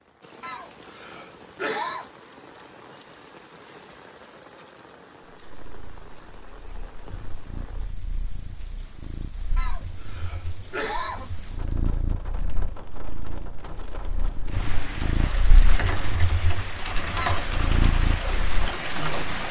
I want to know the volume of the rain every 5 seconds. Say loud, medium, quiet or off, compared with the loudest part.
quiet, quiet, quiet, loud.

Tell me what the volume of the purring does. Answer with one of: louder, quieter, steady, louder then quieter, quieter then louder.
louder.